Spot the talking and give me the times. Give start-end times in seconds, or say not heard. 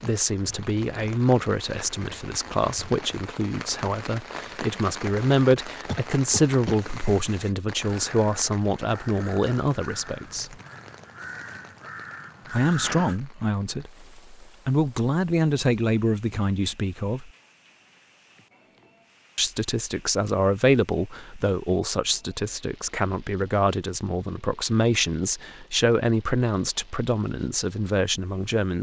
0.0-10.6, 12.5-17.3, 19.4-28.7.